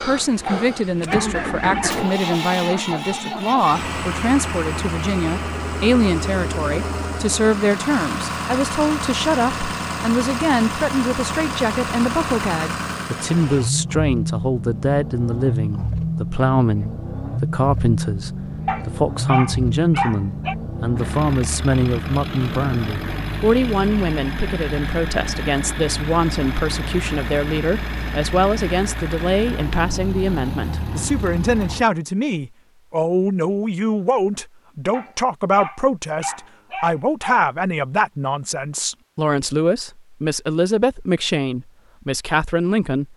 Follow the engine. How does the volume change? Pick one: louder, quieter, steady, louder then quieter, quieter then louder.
steady.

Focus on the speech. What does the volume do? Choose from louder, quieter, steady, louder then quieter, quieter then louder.
steady.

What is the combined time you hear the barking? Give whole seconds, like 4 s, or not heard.
6 s.